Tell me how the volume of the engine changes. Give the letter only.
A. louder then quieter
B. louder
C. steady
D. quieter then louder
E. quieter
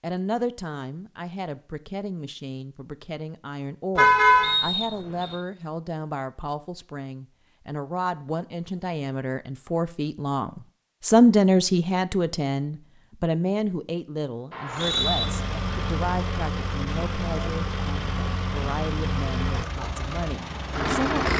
C.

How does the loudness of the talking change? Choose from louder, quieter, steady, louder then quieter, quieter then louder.
louder then quieter.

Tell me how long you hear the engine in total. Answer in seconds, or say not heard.
7 s.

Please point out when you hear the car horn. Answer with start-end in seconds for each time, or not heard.
4.0-4.6.